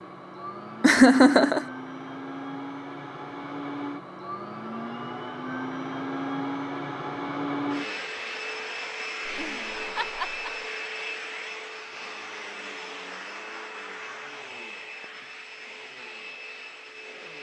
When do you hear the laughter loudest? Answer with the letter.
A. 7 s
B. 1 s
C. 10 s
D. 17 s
B.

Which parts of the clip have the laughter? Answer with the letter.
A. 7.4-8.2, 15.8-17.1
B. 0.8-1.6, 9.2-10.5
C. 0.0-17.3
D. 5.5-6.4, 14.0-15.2
B.